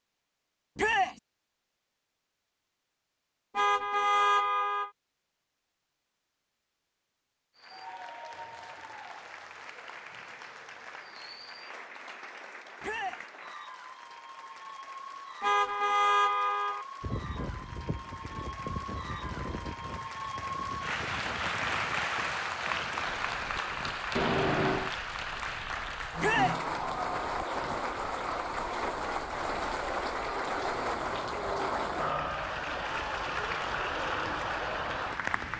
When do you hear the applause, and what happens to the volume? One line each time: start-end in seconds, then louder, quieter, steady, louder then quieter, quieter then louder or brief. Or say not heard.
7.5-35.5 louder.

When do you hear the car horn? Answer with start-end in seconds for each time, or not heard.
3.5-4.9, 15.4-16.9, 24.1-24.9.